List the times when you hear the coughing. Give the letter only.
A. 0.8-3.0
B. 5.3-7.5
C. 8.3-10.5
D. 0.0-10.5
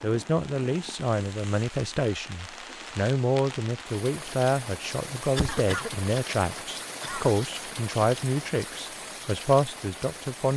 B.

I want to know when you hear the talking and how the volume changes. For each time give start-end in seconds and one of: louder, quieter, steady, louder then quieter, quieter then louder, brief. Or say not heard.
0.0-10.5 steady.